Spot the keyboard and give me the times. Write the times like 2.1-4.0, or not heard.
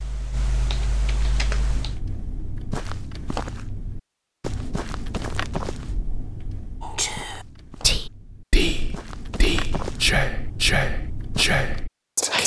0.0-2.0.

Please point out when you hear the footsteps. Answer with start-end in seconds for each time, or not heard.
1.6-11.8.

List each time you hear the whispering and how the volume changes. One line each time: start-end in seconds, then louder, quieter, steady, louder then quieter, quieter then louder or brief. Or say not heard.
6.8-12.4 steady.